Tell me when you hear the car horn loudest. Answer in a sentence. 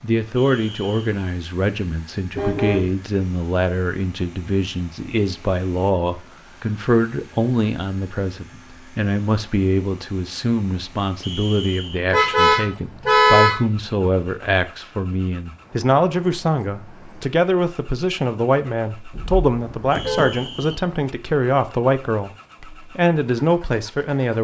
The loudest moment of the car horn is at 13 seconds.